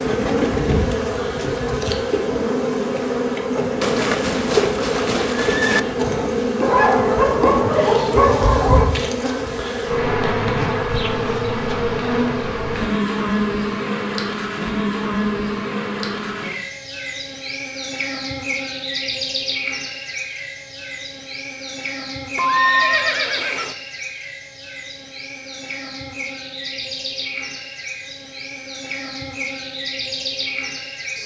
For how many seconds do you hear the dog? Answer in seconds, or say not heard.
2 s.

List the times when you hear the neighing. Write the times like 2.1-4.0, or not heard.
3.8-5.8, 22.4-23.8.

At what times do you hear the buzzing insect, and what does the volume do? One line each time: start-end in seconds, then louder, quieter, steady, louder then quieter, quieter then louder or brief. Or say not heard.
0.0-31.2 quieter.